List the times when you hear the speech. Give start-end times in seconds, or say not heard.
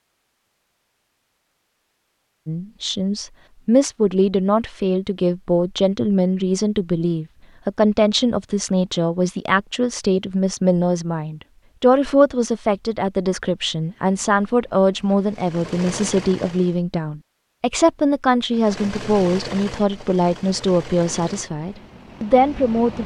2.5-23.0.